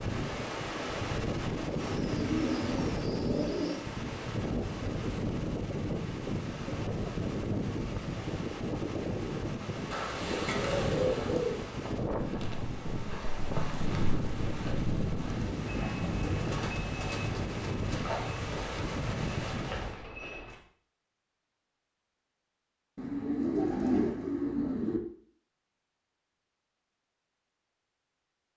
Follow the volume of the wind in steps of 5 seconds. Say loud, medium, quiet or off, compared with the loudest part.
loud, loud, loud, loud, off, off.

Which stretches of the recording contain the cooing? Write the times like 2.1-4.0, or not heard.
1.7-3.9, 9.9-11.6, 16.2-18.0, 22.9-25.0.